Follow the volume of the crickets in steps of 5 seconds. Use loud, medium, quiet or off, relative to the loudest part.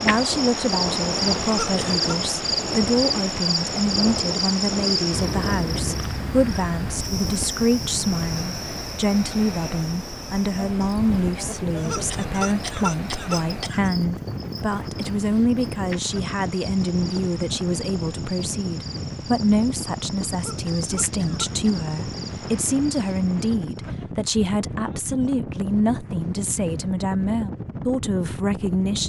loud, medium, quiet, quiet, quiet, off.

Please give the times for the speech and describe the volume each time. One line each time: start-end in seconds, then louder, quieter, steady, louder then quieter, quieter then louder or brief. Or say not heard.
0.0-29.0 steady.